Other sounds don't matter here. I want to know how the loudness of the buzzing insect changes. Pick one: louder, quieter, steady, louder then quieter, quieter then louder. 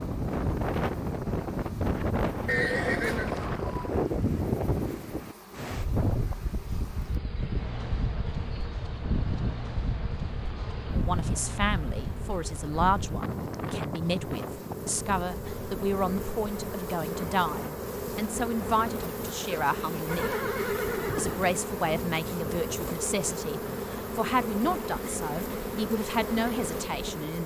louder.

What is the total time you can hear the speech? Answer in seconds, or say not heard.
16 s.